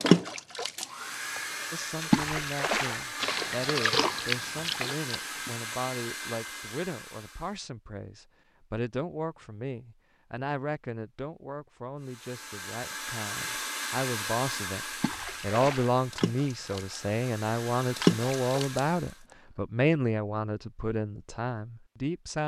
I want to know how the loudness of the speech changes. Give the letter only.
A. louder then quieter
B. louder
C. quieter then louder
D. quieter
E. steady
B.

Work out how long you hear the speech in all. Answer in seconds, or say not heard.
21 s.